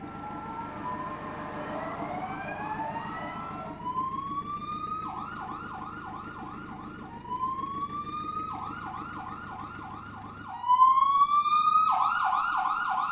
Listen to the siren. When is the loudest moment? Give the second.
11 s.